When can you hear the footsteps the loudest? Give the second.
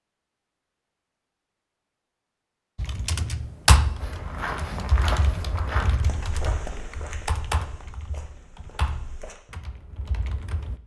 5 s.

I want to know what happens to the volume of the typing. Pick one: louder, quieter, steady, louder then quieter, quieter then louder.
quieter.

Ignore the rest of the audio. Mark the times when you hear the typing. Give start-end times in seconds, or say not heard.
2.8-10.8.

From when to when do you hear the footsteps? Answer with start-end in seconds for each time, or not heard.
4.0-9.4.